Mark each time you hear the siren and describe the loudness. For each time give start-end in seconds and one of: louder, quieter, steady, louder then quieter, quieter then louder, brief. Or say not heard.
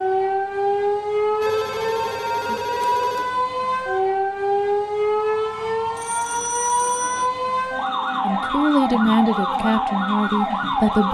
0.0-11.0 steady.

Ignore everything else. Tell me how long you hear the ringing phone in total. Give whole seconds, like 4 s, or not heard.
3 s.